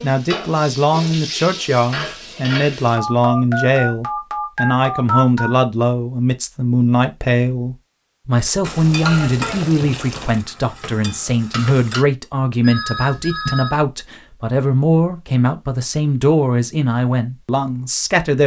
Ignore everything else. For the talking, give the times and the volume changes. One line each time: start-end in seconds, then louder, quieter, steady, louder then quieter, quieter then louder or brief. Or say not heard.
0.0-18.4 steady.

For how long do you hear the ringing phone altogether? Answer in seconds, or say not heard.
4 s.